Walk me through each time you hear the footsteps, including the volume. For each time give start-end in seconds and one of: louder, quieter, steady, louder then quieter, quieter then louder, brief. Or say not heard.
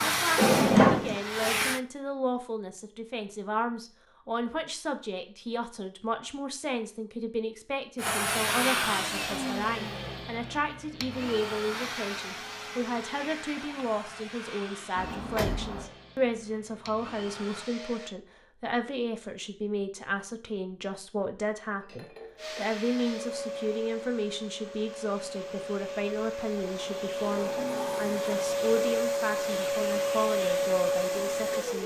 not heard.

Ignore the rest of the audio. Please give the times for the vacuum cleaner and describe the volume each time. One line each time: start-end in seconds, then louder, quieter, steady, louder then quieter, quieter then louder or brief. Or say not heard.
0.0-1.8 brief
8.0-18.1 quieter
22.4-31.8 louder.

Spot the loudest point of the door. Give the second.
1 s.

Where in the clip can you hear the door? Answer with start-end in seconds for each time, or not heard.
0.3-1.2, 14.9-15.8, 27.1-28.5.